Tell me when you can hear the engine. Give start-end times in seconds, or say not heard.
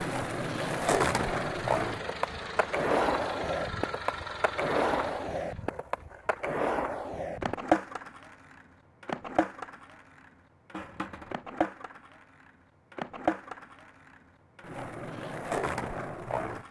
0.0-5.7.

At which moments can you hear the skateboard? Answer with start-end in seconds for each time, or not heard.
0.0-16.6.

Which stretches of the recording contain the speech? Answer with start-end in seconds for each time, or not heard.
not heard.